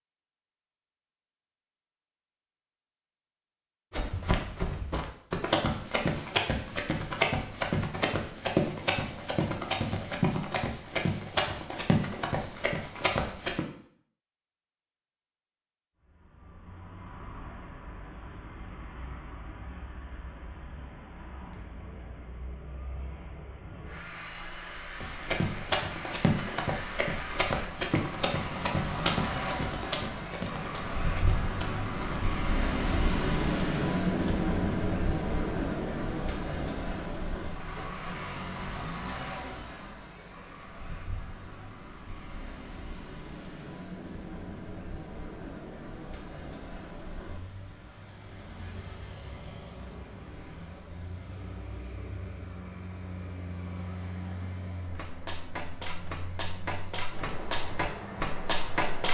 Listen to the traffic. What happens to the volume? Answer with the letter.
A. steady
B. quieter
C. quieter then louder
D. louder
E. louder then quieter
E.